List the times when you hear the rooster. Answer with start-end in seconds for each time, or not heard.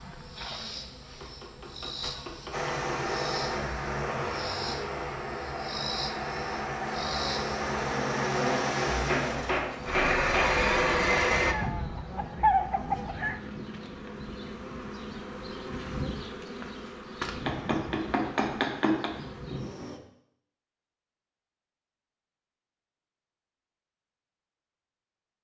10.1-13.4.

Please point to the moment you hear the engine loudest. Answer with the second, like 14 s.
11 s.